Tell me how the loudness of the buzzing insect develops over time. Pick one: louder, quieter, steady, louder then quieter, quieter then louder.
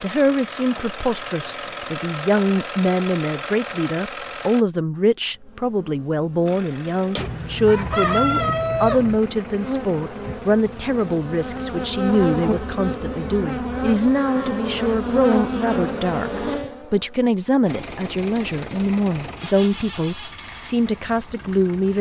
louder.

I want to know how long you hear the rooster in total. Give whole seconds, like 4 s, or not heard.
2 s.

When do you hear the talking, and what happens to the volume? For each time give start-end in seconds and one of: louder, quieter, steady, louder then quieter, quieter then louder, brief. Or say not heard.
0.0-21.9 steady.